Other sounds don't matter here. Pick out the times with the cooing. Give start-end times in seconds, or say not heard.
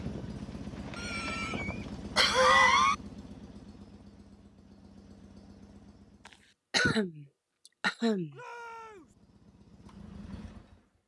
0.0-2.1.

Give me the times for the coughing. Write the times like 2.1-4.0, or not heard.
0.9-3.0, 6.7-8.3.